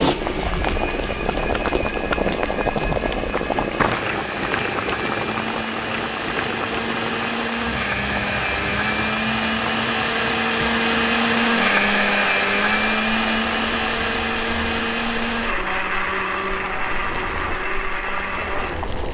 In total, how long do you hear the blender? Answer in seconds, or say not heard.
19 s.